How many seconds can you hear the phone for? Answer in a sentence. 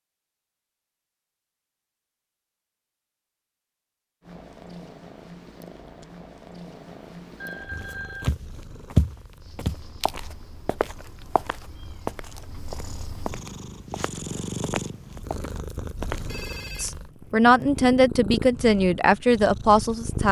The phone can be heard for 2 seconds in total.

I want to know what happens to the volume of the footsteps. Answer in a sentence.
The loudness of the footsteps goes down.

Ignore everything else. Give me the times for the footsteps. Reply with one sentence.
The footsteps can be heard from 7.7 to 16.4 s.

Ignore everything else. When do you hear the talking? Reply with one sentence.
The talking can be heard from 16.8 to 20.2 s.